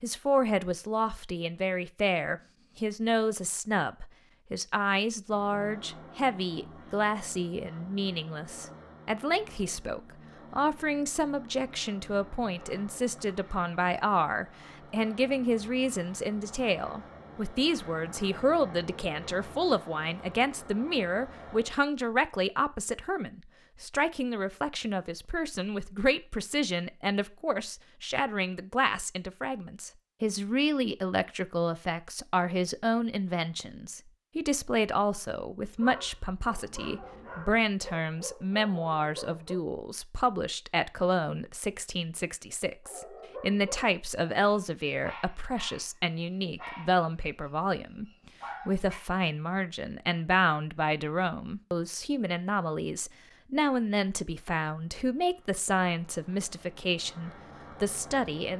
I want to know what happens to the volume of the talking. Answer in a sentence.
The volume of the talking stays about the same.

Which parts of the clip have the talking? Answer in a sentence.
The talking can be heard from 0.0 to 48.0 s and from 48.6 to 58.5 s.